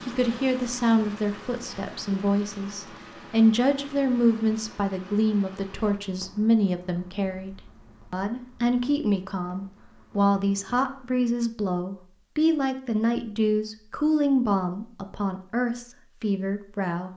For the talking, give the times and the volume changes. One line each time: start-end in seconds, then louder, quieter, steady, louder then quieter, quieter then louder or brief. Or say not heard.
0.0-17.1 steady.